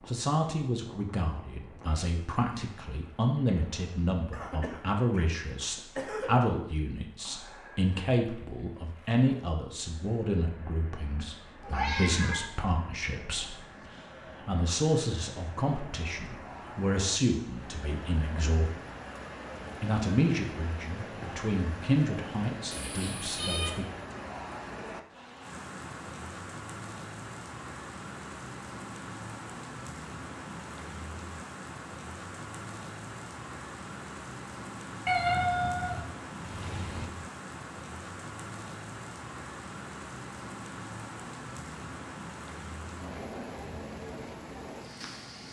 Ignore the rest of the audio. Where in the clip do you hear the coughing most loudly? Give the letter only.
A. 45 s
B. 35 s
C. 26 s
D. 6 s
D.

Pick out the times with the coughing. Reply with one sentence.
The coughing can be heard from 4.3 to 6.3 s.